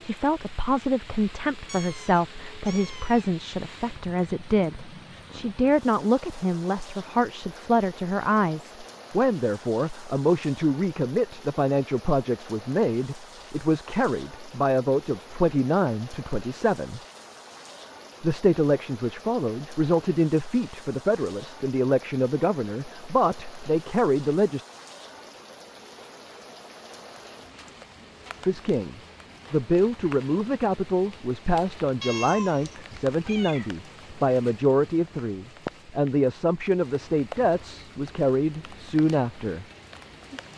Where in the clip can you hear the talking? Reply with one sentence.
You can hear the talking from 0.0 to 17.0 s, from 18.2 to 24.6 s and from 28.4 to 39.6 s.